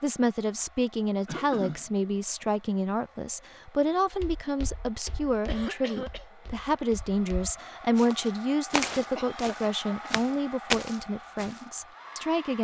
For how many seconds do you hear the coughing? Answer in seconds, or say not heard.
3 s.